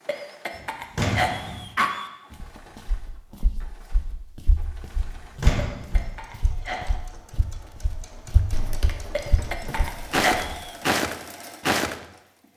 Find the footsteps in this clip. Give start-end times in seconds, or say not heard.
2.4-11.9.